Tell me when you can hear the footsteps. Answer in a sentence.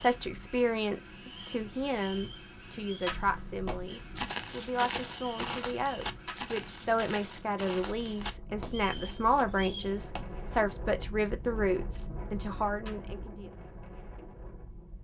The footsteps can be heard from 3.0 to 10.6 s.